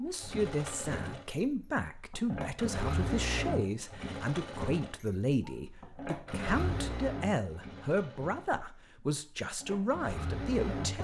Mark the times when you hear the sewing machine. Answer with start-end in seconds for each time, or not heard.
0.1-10.9.